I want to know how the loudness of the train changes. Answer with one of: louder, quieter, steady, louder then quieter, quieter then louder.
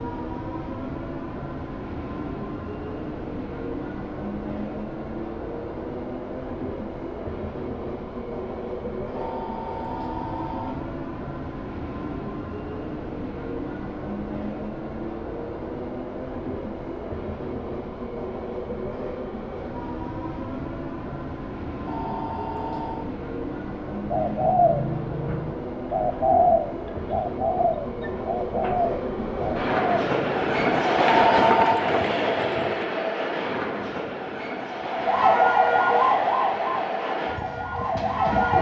louder.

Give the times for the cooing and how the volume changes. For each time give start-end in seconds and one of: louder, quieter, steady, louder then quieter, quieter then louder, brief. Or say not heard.
24.1-32.9 quieter.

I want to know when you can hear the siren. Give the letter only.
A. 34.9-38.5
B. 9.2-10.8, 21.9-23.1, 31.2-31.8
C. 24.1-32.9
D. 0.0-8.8
A.